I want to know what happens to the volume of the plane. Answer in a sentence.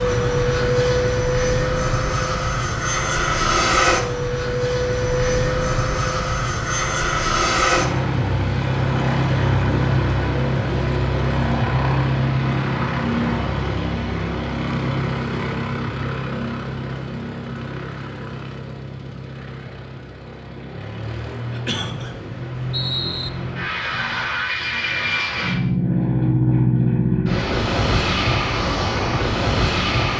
The loudness of the plane goes down, then up.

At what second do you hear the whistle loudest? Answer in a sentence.
The loudest moment of the whistle is at 23 seconds.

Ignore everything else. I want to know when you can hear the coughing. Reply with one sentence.
The coughing can be heard from 21.5 to 22.1 s.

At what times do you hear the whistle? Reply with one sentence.
The whistle can be heard from 21.7 to 23.3 s.